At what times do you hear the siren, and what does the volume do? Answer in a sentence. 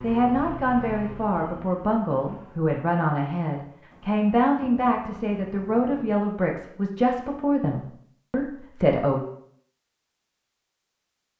The siren can't be heard in this clip.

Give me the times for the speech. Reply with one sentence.
You can hear the speech from 0.0 to 9.2 s.